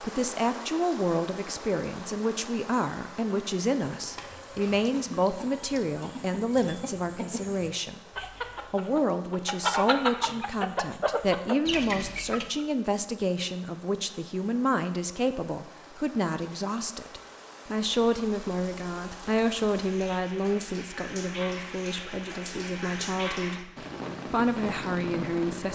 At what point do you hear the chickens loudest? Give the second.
10 s.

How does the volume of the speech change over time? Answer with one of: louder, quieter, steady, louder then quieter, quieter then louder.
steady.